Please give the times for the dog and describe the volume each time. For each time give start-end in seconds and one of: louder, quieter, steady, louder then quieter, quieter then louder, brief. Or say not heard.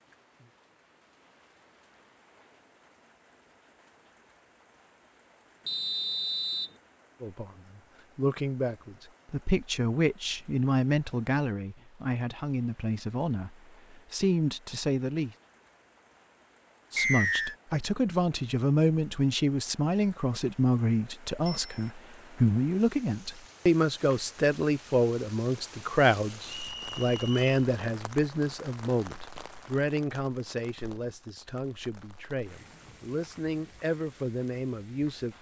not heard.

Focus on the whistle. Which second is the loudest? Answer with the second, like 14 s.
17 s.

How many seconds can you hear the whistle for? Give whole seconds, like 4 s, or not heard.
3 s.